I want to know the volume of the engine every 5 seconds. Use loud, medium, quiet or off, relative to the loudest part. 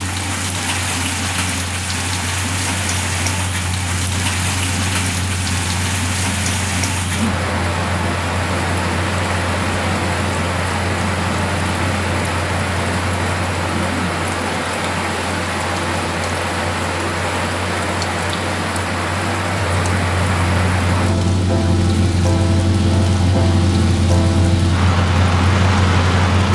medium, medium, medium, medium, loud, loud.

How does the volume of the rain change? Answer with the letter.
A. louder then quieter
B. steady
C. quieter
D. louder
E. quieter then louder
B.